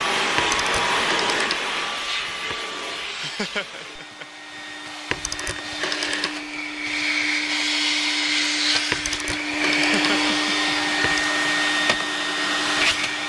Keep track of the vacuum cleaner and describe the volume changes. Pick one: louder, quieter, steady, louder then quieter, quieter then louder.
quieter then louder.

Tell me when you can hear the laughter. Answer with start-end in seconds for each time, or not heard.
3.0-4.2, 9.7-10.3.